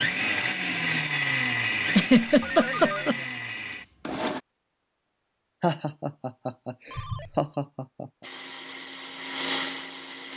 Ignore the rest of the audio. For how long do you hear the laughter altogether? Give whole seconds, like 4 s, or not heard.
4 s.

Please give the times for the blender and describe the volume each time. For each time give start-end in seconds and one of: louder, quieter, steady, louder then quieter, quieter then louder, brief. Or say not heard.
0.0-4.4 quieter
8.2-10.3 brief.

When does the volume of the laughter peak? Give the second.
2 s.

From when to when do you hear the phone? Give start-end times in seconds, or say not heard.
2.4-3.0, 6.9-7.5.